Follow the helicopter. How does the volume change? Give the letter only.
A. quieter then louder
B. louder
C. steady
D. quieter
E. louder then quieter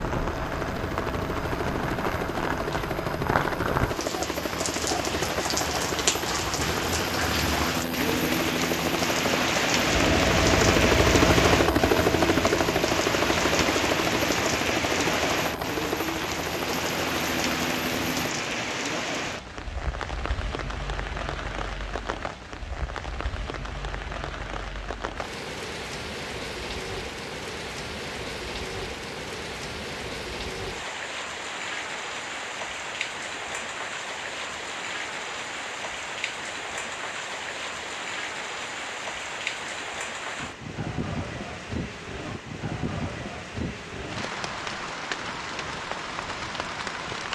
E.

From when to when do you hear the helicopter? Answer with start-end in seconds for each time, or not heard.
0.0-18.4.